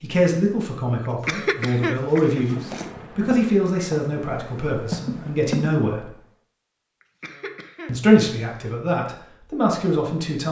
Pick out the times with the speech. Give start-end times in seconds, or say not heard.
0.0-6.1, 7.8-10.4.